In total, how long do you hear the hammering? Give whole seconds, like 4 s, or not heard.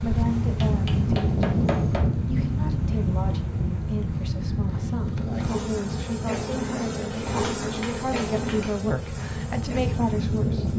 3 s.